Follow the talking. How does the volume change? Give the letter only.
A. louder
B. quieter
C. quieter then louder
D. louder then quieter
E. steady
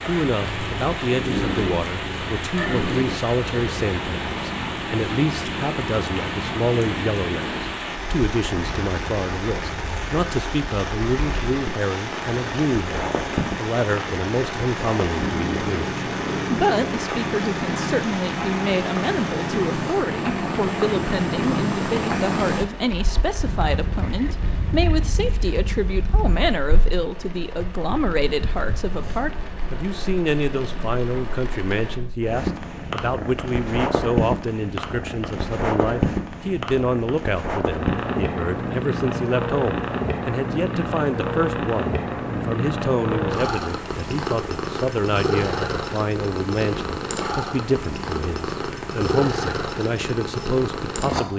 E.